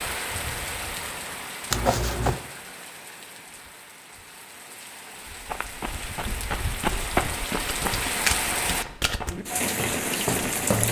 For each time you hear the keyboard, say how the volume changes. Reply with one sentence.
The keyboard can't be heard in this clip.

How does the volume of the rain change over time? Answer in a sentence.
The loudness of the rain goes down, then up.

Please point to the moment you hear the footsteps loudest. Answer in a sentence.
The volume of the footsteps peaks at 7 seconds.